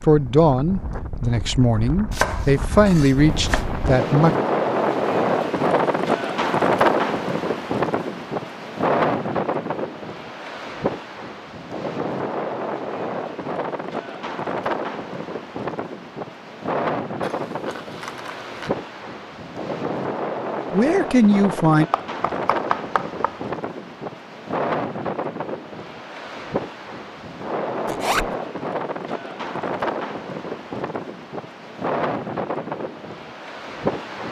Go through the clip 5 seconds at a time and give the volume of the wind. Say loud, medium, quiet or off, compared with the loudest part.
medium, loud, medium, medium, medium, medium, medium.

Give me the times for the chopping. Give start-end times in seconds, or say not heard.
2.1-3.7, 21.9-23.5.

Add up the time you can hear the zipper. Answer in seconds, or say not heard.
3 s.